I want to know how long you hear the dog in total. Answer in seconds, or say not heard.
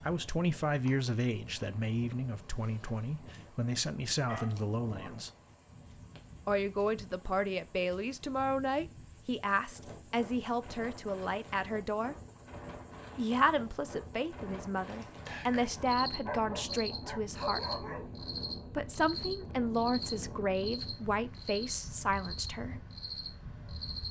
3 s.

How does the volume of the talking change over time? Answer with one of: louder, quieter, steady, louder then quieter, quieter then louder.
steady.